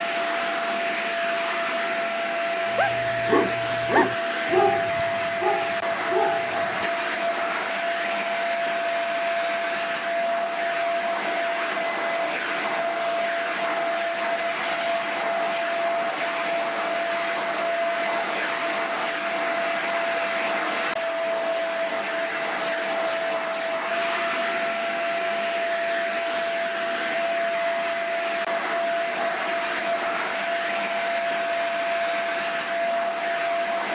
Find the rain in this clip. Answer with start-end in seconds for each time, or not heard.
not heard.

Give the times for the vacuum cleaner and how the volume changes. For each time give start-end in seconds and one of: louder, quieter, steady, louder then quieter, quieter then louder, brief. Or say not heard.
0.0-33.9 steady.